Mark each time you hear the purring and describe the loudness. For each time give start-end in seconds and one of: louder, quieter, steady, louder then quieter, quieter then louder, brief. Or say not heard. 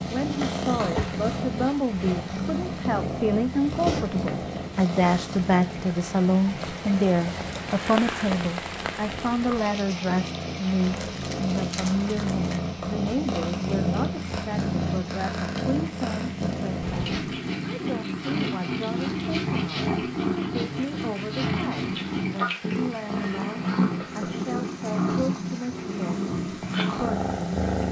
0.0-27.8 quieter then louder.